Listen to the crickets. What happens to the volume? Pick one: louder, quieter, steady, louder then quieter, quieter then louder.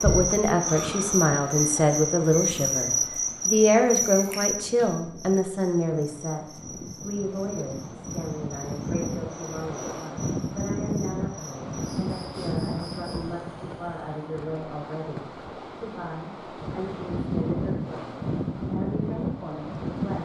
quieter.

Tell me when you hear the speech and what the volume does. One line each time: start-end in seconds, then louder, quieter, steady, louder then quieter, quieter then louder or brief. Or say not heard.
0.0-20.2 quieter.